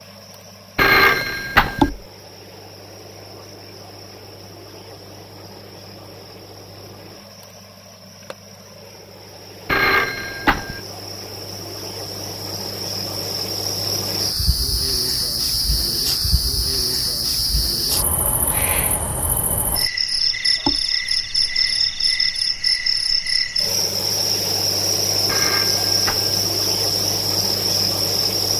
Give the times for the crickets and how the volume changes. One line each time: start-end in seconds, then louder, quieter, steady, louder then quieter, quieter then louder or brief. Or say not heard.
0.0-28.5 louder.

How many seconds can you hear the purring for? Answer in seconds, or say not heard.
not heard.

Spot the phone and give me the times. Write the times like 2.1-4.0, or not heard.
0.8-1.9, 9.7-10.8, 25.2-26.4.